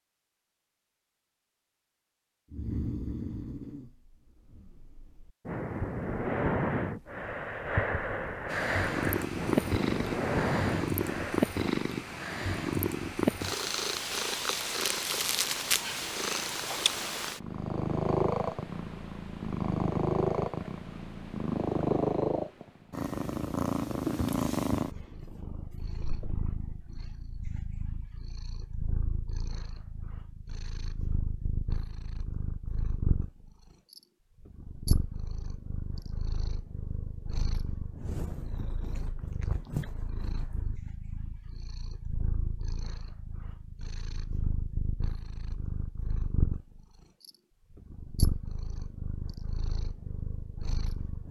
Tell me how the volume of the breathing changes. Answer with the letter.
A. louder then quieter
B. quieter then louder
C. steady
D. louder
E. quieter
D.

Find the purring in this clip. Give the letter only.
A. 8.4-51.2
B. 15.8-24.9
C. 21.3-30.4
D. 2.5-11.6
A.